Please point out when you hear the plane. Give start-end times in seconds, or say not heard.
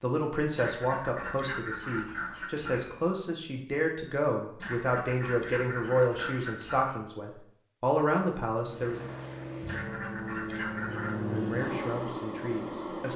8.5-13.1.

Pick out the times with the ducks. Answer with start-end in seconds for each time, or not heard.
0.6-2.8, 4.6-7.0, 9.7-11.2.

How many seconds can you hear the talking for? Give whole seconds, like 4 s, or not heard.
11 s.